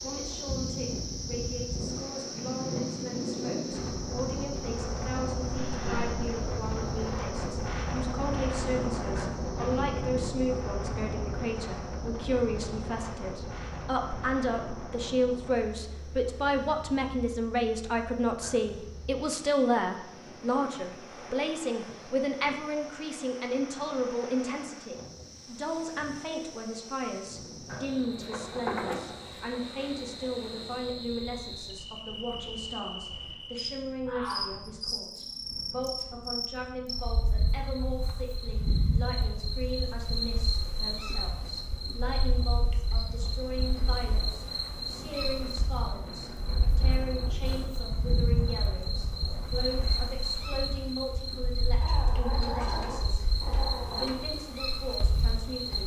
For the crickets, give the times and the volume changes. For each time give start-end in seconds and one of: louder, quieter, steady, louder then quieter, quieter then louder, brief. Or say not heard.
0.0-55.8 quieter then louder.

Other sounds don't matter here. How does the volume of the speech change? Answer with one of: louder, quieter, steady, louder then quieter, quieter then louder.
louder then quieter.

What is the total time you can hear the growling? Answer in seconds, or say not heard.
3 s.